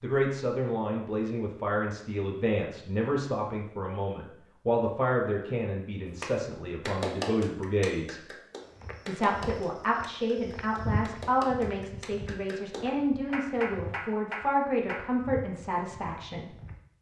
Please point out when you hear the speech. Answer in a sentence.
You can hear the speech from 0.0 to 8.2 s and from 9.1 to 16.6 s.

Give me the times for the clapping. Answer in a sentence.
The clapping can be heard from 6.2 to 15.0 s.